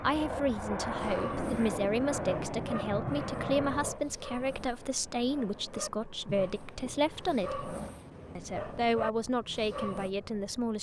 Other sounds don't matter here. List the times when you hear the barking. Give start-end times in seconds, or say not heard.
0.9-10.2.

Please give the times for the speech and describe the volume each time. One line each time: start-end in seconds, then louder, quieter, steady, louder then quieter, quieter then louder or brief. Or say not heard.
0.0-7.8 steady
8.3-10.7 brief.